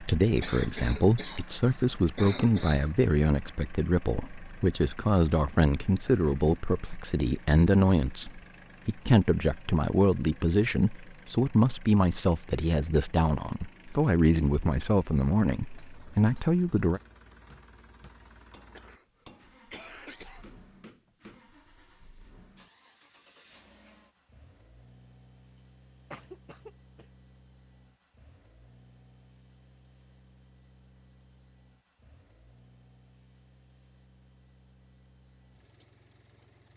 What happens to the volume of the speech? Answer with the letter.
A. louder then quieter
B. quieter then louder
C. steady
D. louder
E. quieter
C.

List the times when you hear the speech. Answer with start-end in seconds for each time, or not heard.
0.0-17.0.